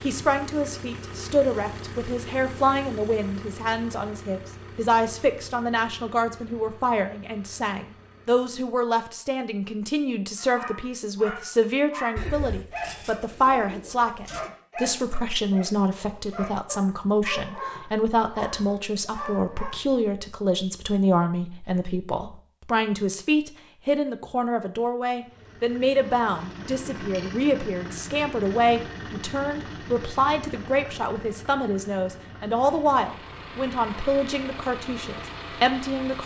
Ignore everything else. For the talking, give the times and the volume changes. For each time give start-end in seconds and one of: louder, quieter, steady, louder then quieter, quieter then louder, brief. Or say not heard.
0.0-36.2 steady.